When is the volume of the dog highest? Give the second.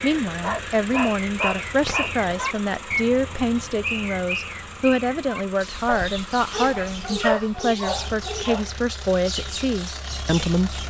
7 s.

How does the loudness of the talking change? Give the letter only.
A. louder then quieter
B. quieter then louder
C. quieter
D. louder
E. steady
E.